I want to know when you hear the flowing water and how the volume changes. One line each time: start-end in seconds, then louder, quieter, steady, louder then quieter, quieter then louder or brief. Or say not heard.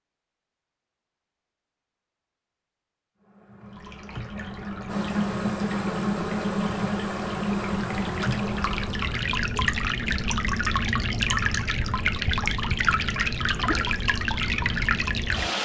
3.6-15.6 louder.